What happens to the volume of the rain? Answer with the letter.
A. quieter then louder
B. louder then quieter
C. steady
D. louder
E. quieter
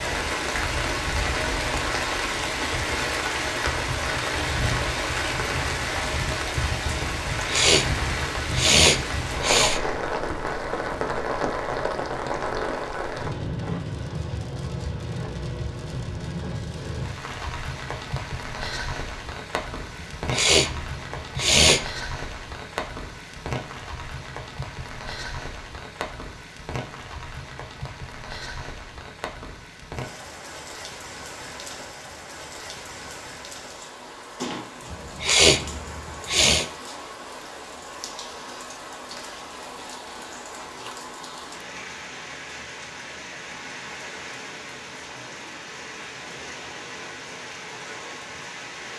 E.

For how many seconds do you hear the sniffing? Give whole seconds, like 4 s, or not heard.
6 s.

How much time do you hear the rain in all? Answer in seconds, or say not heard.
49 s.